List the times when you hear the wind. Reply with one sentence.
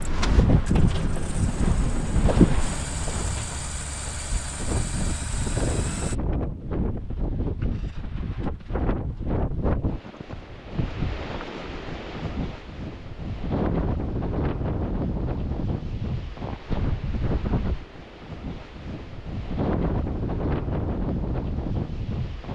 You can hear the wind from 0.0 to 22.5 s.